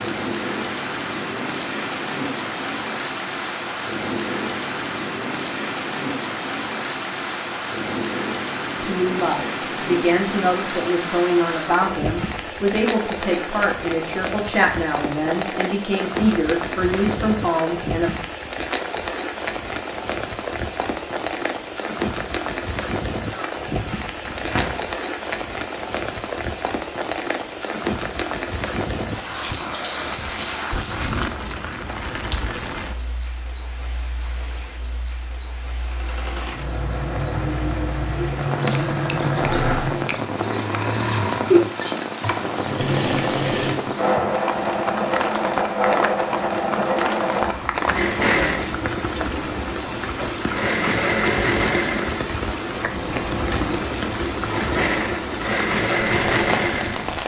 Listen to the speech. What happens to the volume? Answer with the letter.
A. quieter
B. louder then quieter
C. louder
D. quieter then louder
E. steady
E.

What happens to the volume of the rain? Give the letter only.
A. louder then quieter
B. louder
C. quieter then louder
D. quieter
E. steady
E.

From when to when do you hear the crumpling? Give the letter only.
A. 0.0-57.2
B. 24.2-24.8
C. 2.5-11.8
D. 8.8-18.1
B.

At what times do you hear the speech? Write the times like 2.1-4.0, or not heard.
8.8-18.1.